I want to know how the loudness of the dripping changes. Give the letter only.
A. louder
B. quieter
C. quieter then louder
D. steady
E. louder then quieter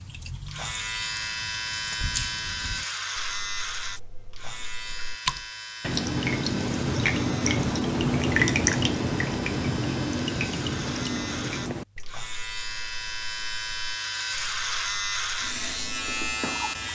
E.